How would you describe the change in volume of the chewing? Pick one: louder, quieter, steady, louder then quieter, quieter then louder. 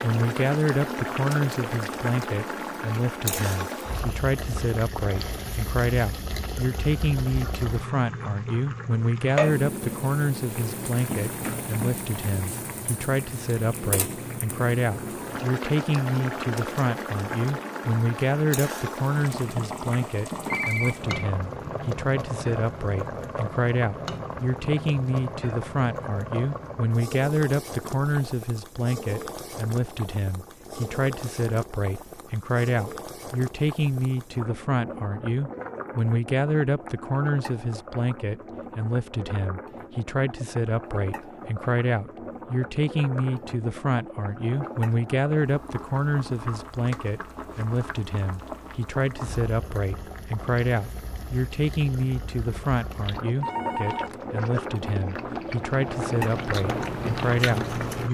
louder.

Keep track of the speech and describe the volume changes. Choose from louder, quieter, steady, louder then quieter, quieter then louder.
steady.